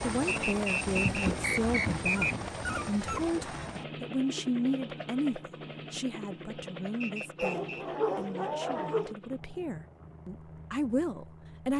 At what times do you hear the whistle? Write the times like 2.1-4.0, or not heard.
0.2-2.4, 7.0-7.9.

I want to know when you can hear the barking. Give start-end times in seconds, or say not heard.
0.8-3.4, 7.4-9.2.